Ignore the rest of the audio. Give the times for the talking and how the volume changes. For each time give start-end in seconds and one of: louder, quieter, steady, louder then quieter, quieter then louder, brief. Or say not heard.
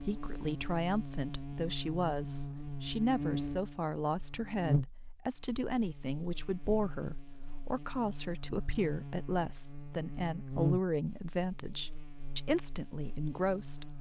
0.0-13.9 steady.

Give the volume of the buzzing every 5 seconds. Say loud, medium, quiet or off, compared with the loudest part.
loud, medium, loud.